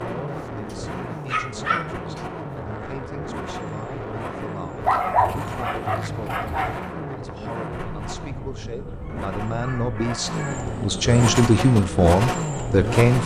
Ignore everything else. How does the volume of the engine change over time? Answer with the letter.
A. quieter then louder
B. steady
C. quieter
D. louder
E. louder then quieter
D.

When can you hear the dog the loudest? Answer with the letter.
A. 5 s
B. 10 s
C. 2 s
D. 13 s
A.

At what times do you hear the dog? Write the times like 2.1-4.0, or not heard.
1.3-2.2, 4.8-6.9, 8.9-10.7.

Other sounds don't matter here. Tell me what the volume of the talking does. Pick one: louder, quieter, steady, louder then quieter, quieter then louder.
louder.